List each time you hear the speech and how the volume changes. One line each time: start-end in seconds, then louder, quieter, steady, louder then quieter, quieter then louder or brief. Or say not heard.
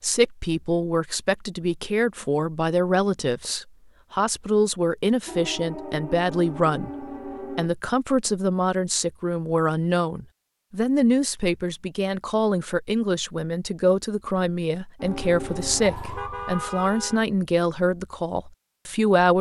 0.0-19.3 steady.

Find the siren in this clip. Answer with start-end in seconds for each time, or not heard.
5.2-7.7, 14.9-16.8.